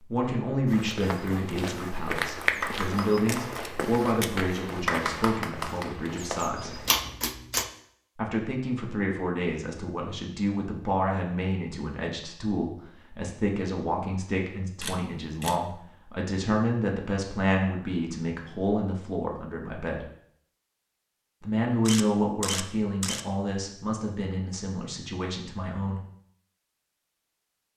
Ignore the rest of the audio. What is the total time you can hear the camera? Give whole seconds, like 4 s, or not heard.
3 s.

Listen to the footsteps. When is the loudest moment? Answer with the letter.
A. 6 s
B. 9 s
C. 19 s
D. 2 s
D.